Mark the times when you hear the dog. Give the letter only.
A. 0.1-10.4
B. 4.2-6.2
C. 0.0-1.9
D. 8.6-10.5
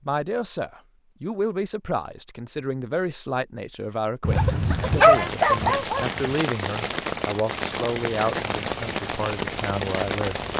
B.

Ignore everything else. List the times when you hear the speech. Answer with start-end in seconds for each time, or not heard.
0.1-10.4.